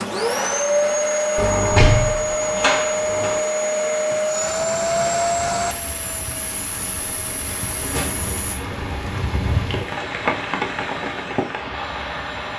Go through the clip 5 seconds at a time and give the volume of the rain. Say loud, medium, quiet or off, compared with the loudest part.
off, loud, loud.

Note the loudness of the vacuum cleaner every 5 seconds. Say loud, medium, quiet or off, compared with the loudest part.
loud, medium, quiet.